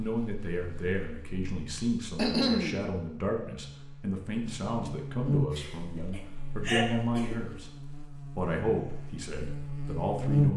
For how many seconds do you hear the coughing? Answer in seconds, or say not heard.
3 s.